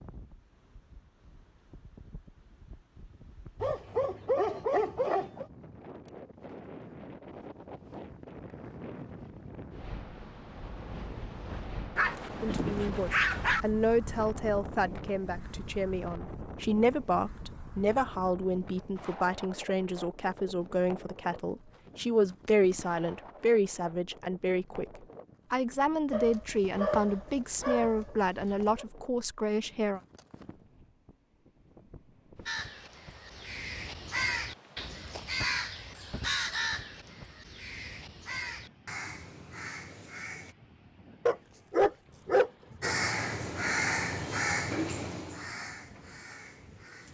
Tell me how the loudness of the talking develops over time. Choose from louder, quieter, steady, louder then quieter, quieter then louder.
steady.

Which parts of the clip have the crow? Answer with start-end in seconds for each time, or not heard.
32.5-40.5, 42.8-47.0.